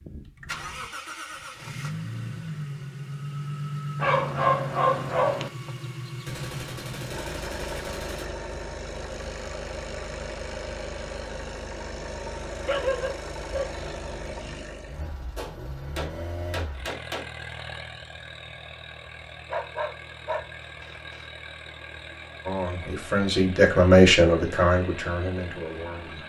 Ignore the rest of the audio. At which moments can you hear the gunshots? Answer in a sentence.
You can hear the gunshots from 6.2 to 8.2 s and from 15.3 to 17.3 s.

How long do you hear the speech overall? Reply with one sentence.
You can hear the speech for 4 seconds altogether.